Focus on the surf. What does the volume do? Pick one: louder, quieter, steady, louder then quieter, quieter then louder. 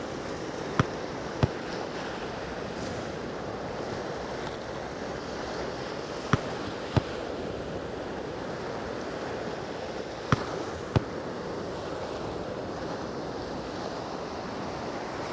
steady.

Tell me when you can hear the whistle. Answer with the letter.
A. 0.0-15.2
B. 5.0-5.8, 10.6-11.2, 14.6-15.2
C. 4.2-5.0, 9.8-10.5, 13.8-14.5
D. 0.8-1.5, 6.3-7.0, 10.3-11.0
D.